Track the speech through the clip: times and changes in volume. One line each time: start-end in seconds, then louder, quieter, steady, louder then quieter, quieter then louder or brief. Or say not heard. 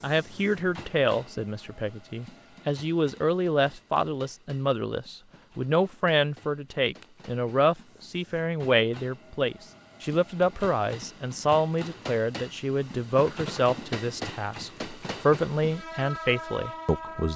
0.0-17.3 steady.